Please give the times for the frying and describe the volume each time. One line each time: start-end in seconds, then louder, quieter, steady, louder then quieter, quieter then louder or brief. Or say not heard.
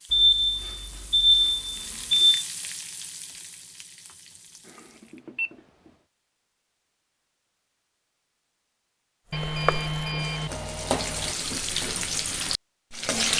0.0-5.2 louder then quieter
9.3-13.3 louder.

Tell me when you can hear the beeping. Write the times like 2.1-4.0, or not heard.
0.1-2.5, 4.7-5.9, 9.3-11.3.